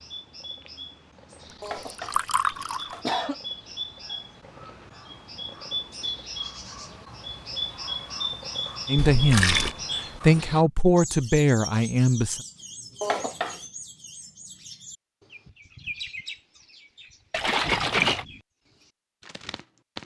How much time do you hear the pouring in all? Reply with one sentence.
You can hear the pouring for 3 seconds altogether.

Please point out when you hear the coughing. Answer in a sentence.
You can hear the coughing from 1.6 to 3.4 s and from 13.0 to 13.6 s.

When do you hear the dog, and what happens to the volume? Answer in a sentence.
The dog can't be heard in this clip.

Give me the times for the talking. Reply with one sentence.
You can hear the talking from 8.8 to 12.4 s.